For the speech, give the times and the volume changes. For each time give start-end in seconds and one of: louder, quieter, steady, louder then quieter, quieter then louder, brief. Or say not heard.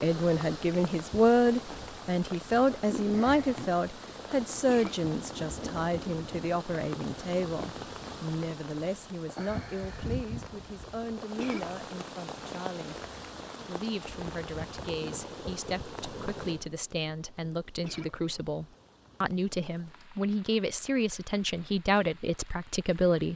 0.0-13.1 quieter
13.7-23.3 louder.